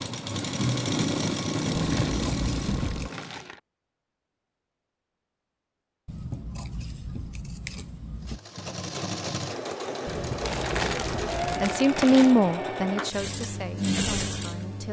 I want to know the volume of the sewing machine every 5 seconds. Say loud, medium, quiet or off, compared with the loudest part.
loud, medium, loud.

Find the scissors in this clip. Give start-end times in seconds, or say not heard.
1.8-3.1, 6.0-8.4, 10.1-11.8.